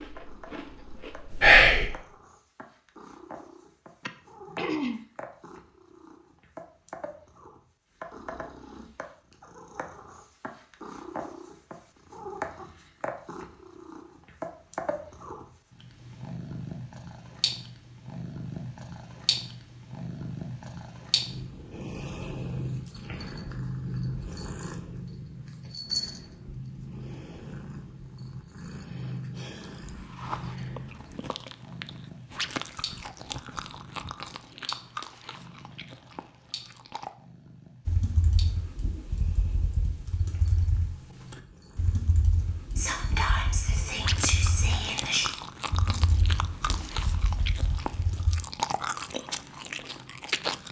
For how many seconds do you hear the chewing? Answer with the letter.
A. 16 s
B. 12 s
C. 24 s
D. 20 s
A.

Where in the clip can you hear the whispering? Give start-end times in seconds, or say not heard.
1.4-1.9, 42.8-45.2.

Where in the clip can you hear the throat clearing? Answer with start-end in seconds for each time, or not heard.
4.0-5.0.